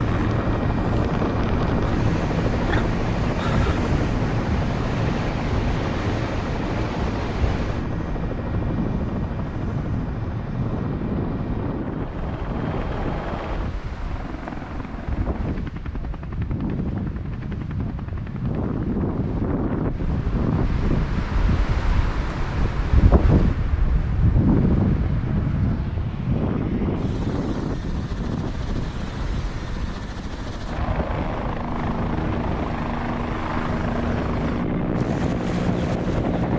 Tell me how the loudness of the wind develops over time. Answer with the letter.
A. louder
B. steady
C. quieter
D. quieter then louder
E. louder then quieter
E.